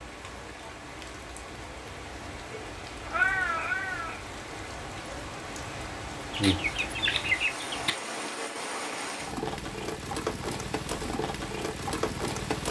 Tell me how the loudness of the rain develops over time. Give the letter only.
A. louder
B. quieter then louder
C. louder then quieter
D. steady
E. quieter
A.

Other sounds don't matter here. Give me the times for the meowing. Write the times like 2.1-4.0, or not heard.
2.5-4.2.